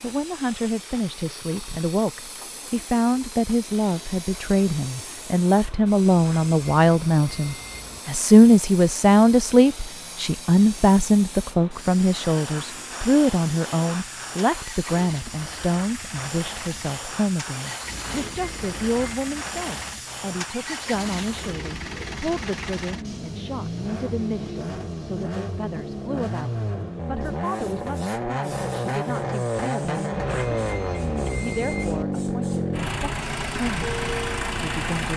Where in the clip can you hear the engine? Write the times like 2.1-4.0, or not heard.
0.0-35.1.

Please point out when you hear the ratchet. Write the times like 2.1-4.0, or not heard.
not heard.